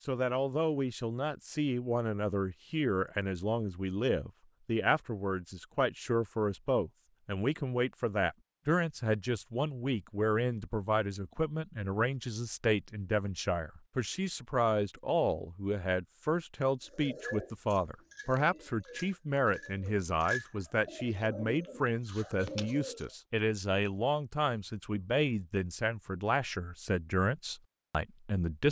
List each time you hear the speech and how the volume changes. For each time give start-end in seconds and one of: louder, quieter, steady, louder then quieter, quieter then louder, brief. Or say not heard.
0.0-28.6 steady.